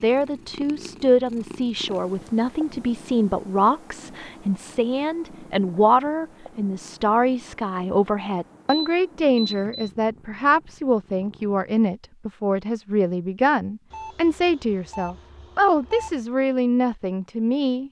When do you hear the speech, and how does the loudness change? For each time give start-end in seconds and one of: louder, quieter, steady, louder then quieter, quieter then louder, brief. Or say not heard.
0.0-17.8 steady.